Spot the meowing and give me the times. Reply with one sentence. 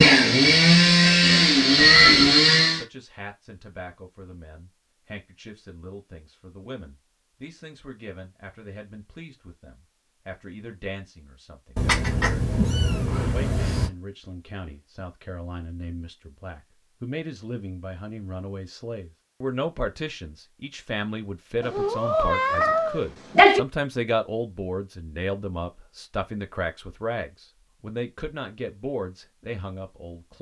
You can hear the meowing from 1.8 to 2.4 s, from 11.8 to 13.9 s and from 21.7 to 23.6 s.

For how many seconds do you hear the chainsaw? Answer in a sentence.
You can hear the chainsaw for 3 seconds altogether.